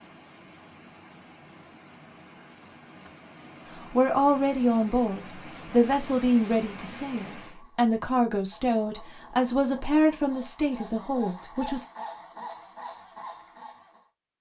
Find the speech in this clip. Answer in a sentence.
You can hear the speech from 3.8 to 11.8 s.